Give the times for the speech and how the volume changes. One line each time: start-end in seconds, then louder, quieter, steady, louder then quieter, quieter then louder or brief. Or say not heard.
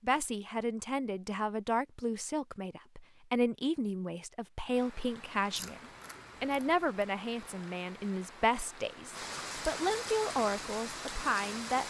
0.0-11.8 steady.